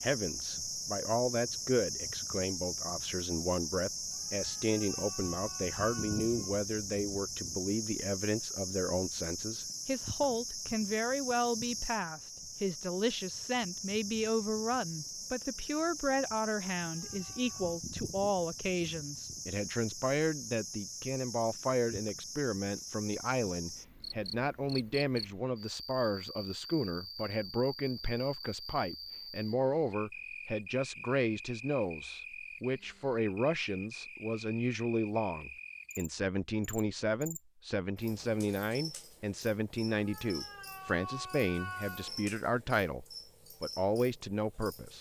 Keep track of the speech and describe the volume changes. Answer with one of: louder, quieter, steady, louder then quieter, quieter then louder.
steady.